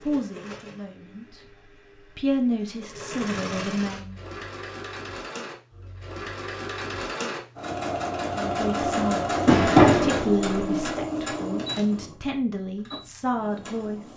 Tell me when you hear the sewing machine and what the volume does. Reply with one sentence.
You can hear the sewing machine from 0.0 to 14.1 s, getting louder then quieter.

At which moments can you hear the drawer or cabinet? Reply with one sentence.
The drawer or cabinet can be heard from 9.4 to 10.7 s.